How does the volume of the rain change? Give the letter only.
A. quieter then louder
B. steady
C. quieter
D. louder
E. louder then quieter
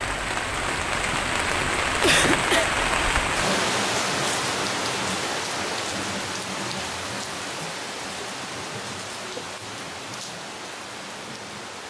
C.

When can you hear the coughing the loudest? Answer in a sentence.
The loudest moment of the coughing is at 2 seconds.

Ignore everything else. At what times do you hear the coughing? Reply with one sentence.
You can hear the coughing from 2.0 to 2.7 s and from 8.0 to 9.4 s.